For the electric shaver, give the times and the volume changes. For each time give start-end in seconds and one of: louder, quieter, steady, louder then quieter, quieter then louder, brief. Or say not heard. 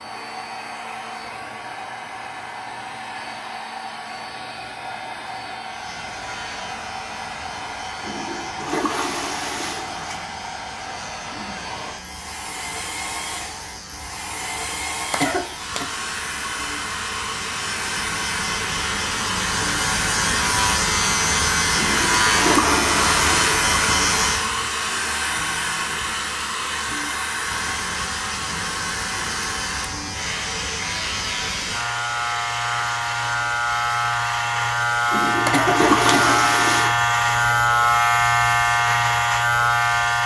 5.7-24.6 louder
27.4-40.2 louder.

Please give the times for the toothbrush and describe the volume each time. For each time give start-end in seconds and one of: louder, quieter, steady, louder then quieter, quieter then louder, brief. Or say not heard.
not heard.